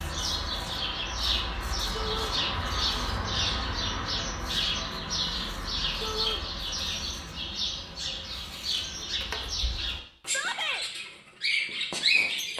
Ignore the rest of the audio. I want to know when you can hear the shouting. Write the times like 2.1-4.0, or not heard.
1.9-2.4, 6.0-6.4, 10.2-10.8.